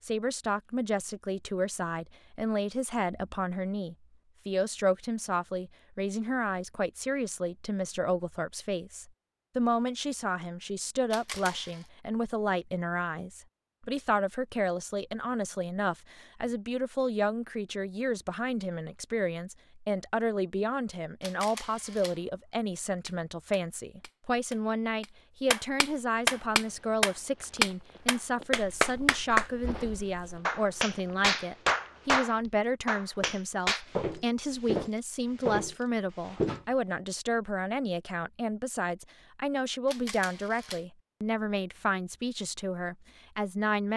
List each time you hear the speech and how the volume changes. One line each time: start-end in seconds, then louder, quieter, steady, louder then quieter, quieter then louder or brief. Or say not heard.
0.0-43.9 steady.